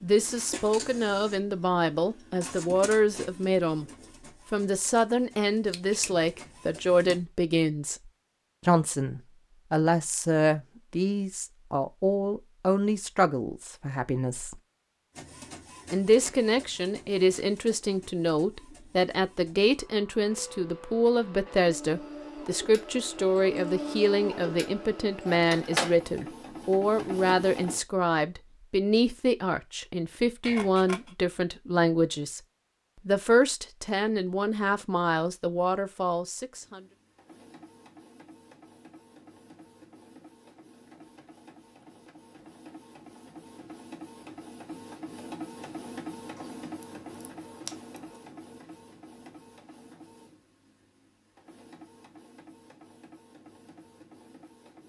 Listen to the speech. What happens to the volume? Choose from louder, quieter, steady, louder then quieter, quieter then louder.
steady.